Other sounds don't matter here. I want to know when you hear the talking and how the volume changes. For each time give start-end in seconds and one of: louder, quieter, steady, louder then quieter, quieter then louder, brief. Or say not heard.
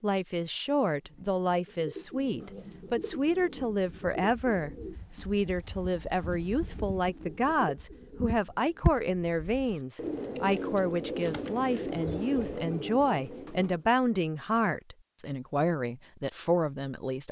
0.0-17.2 steady.